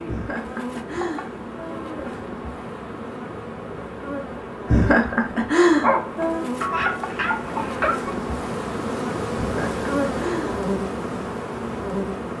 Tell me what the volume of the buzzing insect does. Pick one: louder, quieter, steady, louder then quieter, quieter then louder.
louder.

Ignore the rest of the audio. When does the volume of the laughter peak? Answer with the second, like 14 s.
6 s.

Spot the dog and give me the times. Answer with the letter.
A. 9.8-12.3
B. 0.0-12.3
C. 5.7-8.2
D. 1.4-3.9
C.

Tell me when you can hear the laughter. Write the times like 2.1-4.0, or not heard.
0.1-2.2, 4.7-6.5, 9.3-10.6.